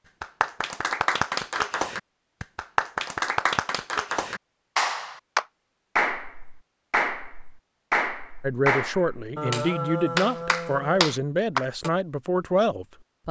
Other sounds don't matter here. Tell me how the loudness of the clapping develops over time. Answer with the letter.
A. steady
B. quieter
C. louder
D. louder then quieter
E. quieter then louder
A.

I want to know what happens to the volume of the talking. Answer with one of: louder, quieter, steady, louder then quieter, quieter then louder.
steady.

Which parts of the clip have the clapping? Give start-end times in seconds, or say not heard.
0.2-11.9.